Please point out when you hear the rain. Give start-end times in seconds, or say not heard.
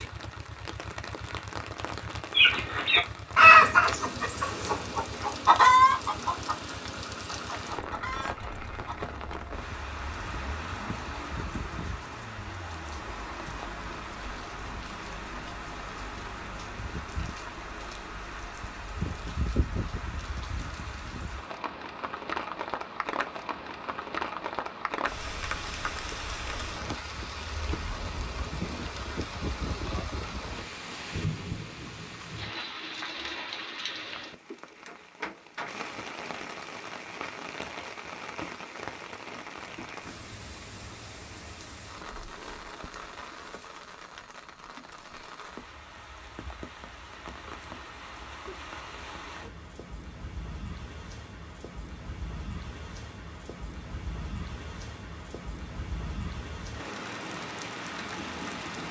0.0-58.8.